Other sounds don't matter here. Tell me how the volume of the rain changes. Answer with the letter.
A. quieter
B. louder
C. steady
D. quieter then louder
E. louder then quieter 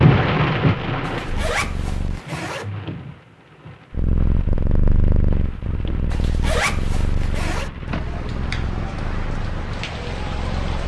D.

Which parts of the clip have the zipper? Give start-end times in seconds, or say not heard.
1.1-2.7, 6.1-7.7.